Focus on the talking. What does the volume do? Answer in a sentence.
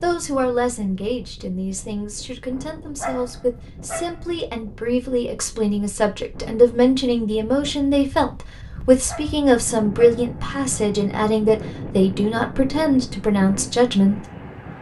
The loudness of the talking goes up.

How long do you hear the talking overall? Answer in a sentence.
You can hear the talking for 14 seconds altogether.